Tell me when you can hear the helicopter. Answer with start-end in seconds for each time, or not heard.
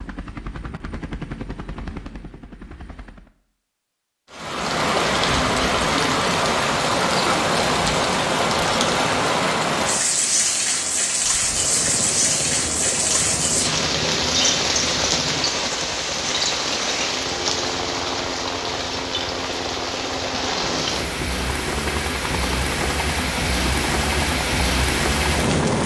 0.0-3.3, 11.2-25.8.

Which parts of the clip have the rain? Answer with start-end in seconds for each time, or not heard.
4.3-25.8.